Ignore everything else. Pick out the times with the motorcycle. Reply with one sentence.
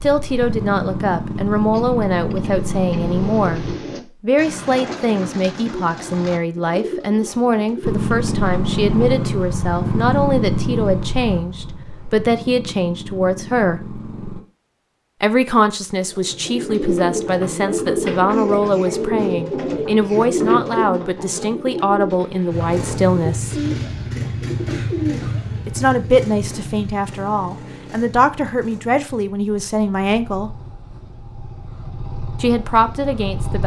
The motorcycle can be heard from 0.0 to 3.8 s, from 7.8 to 14.4 s and from 22.5 to 33.6 s.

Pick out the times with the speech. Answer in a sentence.
You can hear the speech from 0.0 to 13.9 s, from 15.2 to 23.6 s, from 25.6 to 30.6 s and from 32.4 to 33.6 s.